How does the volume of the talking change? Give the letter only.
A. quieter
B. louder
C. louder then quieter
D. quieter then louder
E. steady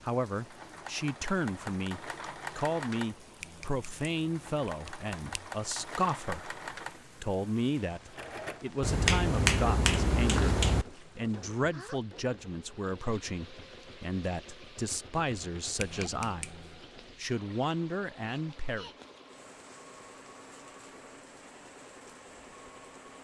E.